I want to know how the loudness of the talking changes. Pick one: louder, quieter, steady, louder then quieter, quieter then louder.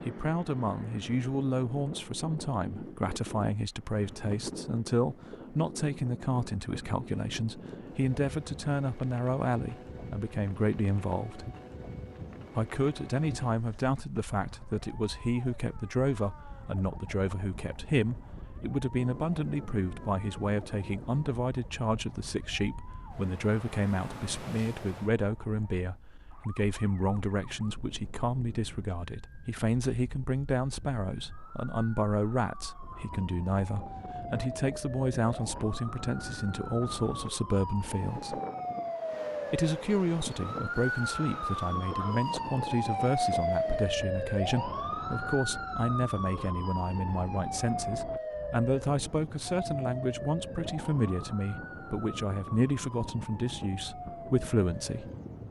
steady.